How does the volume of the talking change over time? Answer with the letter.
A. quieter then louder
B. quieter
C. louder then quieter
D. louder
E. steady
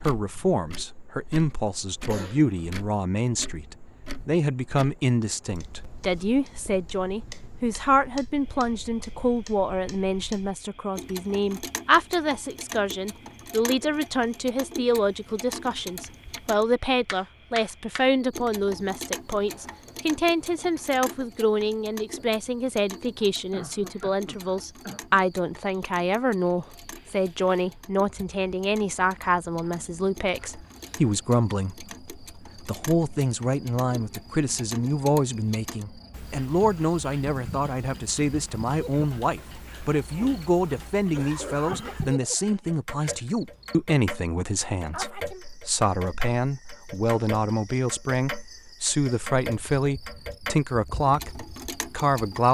E.